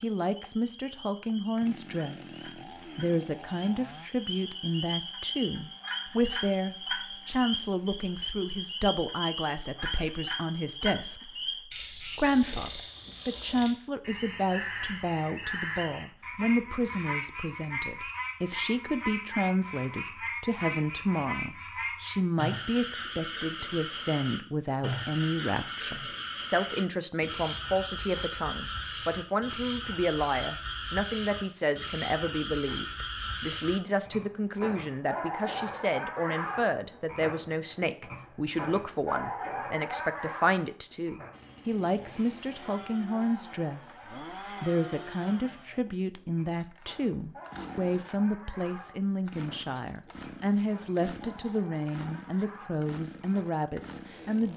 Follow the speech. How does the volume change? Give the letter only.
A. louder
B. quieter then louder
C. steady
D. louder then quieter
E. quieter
C.